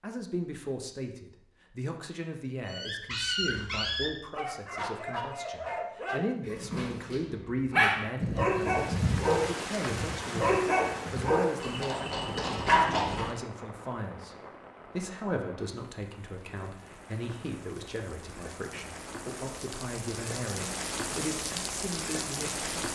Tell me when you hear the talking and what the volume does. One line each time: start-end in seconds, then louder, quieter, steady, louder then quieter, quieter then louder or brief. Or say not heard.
0.0-22.6 steady.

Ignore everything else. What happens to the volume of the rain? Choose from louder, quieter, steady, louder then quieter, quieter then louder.
quieter then louder.